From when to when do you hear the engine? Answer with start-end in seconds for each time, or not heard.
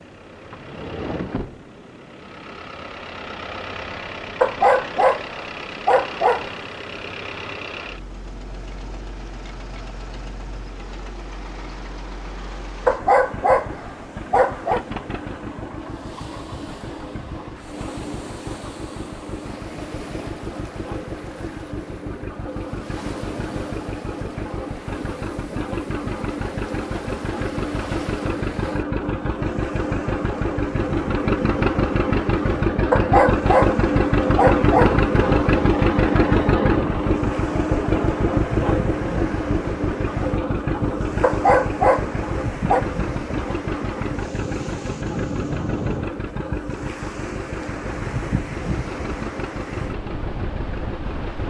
0.0-51.4.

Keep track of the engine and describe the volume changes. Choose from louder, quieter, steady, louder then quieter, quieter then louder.
louder then quieter.